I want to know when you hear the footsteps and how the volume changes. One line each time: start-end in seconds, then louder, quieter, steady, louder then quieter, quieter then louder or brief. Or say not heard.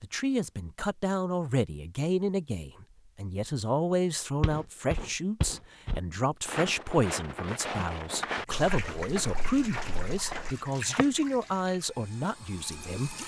4.4-11.1 quieter.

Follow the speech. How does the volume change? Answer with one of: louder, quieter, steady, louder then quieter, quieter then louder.
steady.